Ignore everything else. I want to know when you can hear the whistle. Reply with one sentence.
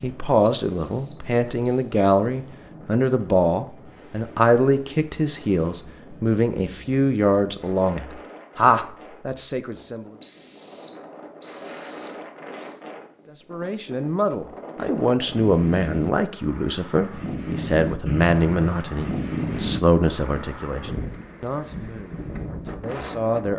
The whistle can be heard from 0.5 to 1.9 s, from 10.2 to 12.8 s and from 18.1 to 19.1 s.